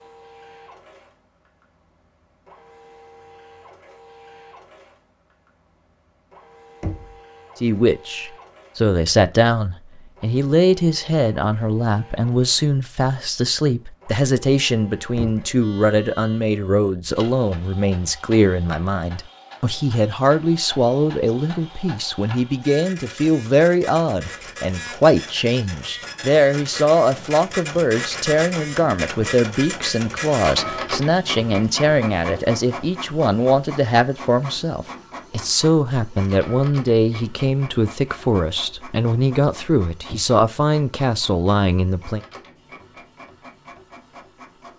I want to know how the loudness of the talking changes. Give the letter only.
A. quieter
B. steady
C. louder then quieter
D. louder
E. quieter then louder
B.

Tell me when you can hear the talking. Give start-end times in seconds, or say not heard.
7.6-42.2.